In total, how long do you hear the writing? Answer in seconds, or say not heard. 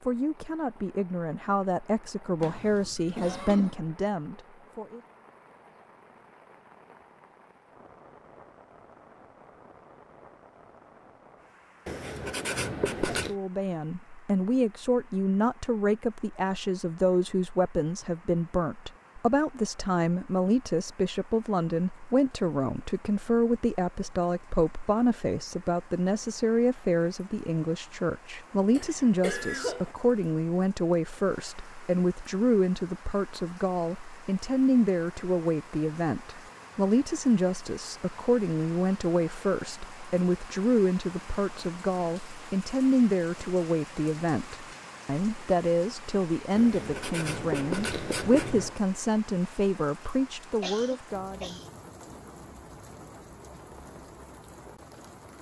4 s.